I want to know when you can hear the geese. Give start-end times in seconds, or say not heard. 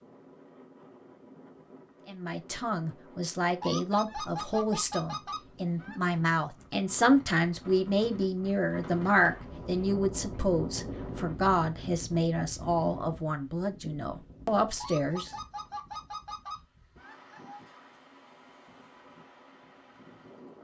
3.6-6.2, 14.8-17.6.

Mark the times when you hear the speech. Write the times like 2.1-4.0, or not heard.
2.0-15.3.